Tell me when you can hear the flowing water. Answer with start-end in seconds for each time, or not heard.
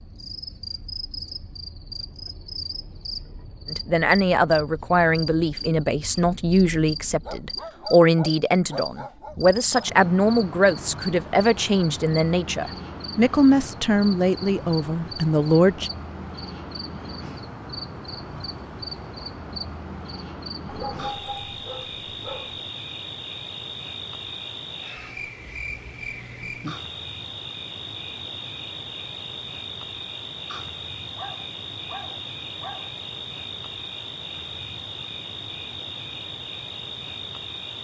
not heard.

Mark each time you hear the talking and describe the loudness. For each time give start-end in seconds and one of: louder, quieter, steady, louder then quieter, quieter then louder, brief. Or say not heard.
3.7-15.9 steady.